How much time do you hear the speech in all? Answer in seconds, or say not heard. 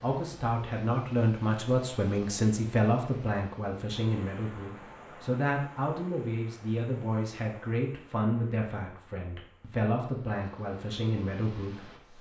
12 s.